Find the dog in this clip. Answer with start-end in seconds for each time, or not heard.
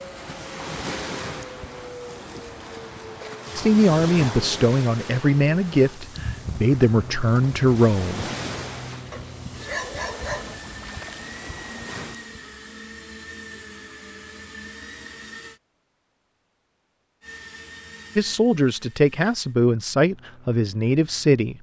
9.1-10.6.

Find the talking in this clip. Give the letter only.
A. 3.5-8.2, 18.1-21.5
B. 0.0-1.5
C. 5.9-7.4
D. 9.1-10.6
A.